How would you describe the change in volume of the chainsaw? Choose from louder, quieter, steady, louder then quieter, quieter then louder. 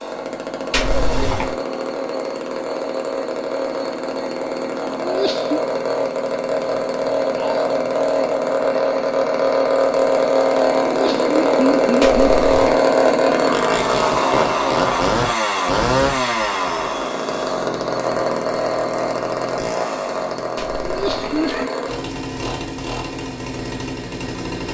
louder then quieter.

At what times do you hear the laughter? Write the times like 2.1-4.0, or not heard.
5.0-5.6, 10.8-12.3, 20.9-21.7.